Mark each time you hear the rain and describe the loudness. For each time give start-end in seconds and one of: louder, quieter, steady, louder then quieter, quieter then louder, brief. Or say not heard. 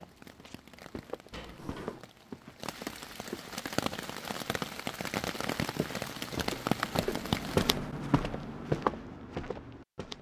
0.0-7.8 louder.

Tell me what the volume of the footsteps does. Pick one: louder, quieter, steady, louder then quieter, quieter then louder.
louder.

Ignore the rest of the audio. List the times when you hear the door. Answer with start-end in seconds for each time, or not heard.
1.3-2.0.